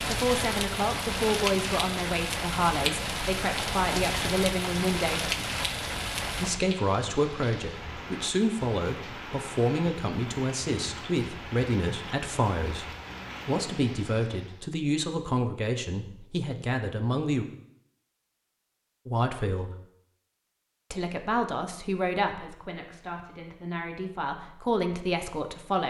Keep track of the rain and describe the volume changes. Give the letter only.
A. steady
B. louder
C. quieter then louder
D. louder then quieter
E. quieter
E.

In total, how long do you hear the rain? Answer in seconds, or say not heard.
15 s.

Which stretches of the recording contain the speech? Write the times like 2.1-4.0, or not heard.
0.0-5.3, 6.3-12.8, 13.4-17.4, 19.1-19.7, 20.9-25.8.